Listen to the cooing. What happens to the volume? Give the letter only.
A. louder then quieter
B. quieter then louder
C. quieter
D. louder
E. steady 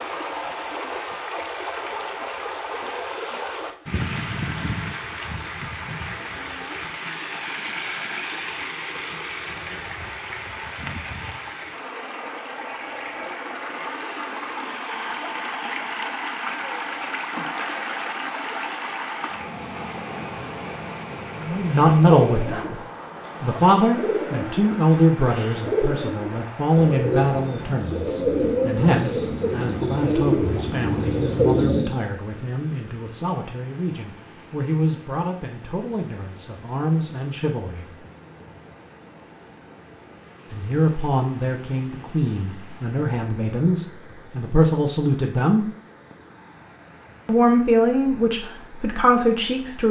D.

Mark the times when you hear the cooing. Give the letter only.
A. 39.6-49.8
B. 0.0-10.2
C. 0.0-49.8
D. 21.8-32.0
D.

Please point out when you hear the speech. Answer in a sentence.
You can hear the speech from 21.4 to 22.8 s, from 23.4 to 38.0 s, from 40.5 to 45.6 s and from 47.2 to 49.8 s.